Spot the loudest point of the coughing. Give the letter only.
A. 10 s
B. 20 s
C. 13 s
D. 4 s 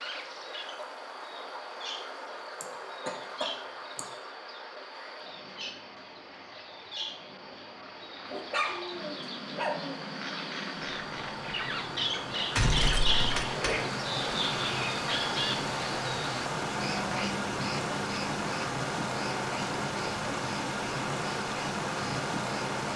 C.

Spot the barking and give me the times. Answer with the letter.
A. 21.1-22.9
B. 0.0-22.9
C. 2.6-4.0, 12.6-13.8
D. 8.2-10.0
D.